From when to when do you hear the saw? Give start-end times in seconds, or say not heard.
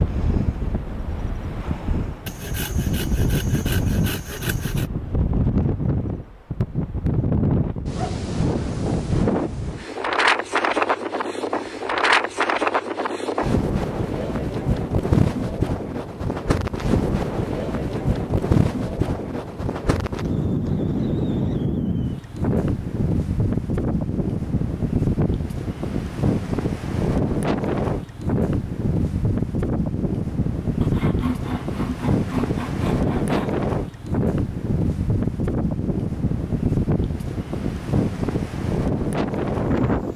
2.2-4.8, 30.8-33.5.